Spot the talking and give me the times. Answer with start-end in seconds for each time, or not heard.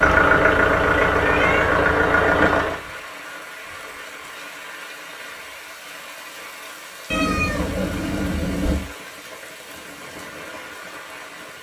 not heard.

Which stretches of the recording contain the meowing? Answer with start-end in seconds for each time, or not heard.
1.2-1.8, 7.1-8.9.